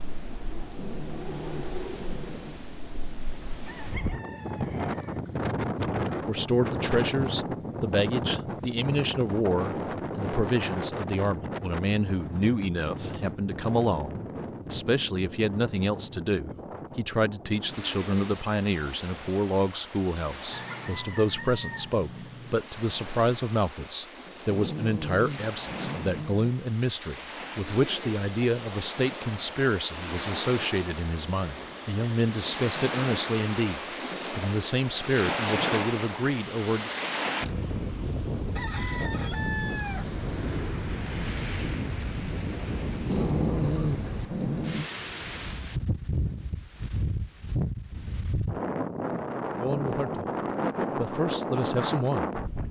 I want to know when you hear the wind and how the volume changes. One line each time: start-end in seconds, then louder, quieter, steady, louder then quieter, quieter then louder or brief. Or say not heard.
0.0-52.6 quieter then louder.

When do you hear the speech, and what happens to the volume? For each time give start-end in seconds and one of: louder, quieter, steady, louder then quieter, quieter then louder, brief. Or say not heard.
6.2-36.9 steady
49.5-50.3 brief
51.0-52.4 brief.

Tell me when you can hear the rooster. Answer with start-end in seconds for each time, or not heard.
3.6-5.2, 20.5-22.6, 38.5-40.2.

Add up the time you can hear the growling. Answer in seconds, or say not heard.
6 s.